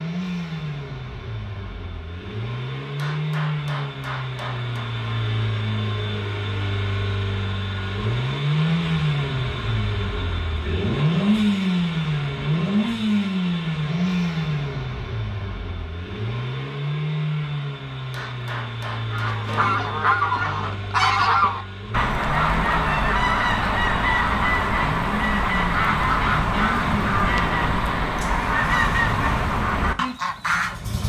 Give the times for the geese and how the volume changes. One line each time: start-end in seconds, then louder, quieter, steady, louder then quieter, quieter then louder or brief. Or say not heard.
19.1-30.8 steady.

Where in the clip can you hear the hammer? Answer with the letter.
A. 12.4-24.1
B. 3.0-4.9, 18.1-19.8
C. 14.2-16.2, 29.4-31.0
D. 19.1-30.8
B.